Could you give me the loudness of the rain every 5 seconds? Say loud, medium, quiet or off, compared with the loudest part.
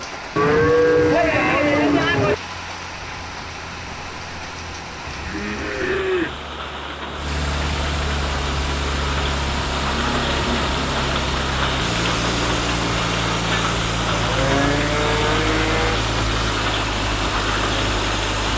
medium, medium, loud, loud.